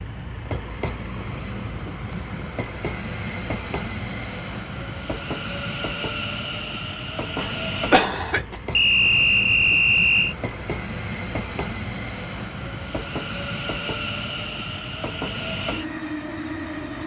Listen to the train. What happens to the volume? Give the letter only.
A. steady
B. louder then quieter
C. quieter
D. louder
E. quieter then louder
A.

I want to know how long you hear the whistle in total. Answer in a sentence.
The whistle can be heard for 2 seconds in total.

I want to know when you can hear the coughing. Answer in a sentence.
The coughing can be heard from 7.3 to 8.6 s.